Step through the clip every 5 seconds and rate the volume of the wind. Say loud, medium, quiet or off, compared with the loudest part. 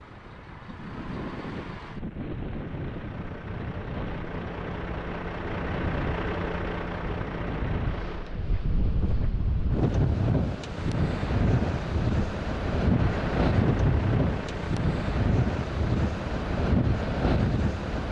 medium, medium, loud, loud.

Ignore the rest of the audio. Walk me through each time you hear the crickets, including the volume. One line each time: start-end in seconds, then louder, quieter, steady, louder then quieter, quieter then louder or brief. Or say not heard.
not heard.